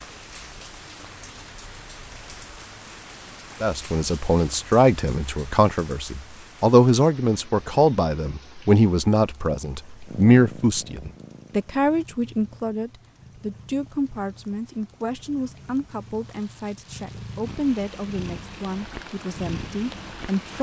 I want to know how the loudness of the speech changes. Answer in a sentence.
The loudness of the speech goes down.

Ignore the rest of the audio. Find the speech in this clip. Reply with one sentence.
You can hear the speech from 3.6 to 20.5 s.